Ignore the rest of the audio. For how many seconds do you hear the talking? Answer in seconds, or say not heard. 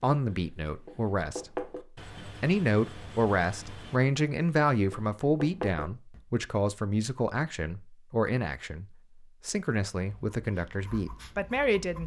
12 s.